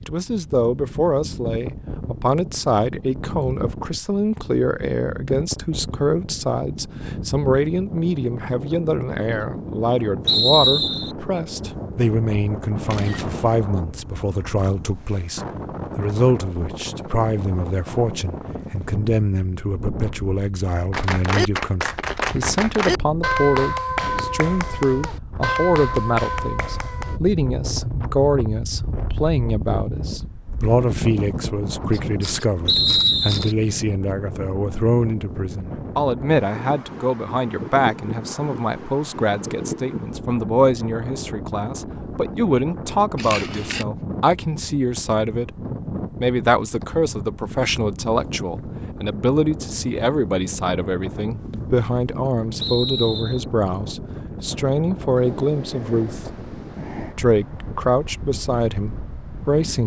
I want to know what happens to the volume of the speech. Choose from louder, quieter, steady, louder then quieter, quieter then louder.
steady.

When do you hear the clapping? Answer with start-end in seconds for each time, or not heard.
20.9-27.2.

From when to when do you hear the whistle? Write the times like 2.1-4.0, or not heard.
10.2-11.2, 32.6-33.5, 52.6-53.5.